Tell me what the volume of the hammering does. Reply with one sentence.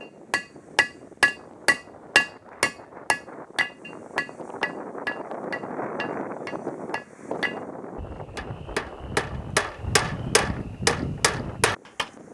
The volume of the hammering goes down, then up.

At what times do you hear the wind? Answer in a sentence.
You can hear the wind from 0.0 to 12.2 s.